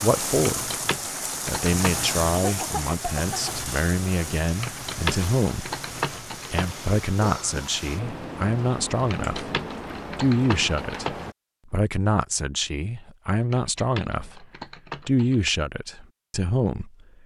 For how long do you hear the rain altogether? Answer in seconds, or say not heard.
11 s.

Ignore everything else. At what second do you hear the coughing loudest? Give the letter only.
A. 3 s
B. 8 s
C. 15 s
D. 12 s
A.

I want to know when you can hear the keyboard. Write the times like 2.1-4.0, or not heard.
0.5-2.0, 4.5-6.8, 9.0-11.2, 13.4-15.5.